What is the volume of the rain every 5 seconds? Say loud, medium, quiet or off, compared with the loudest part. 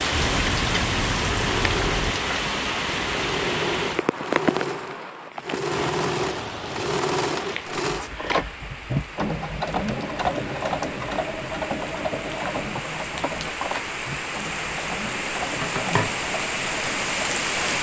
loud, medium, medium, loud.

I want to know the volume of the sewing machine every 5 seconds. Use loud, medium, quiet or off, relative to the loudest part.
loud, loud, loud, medium.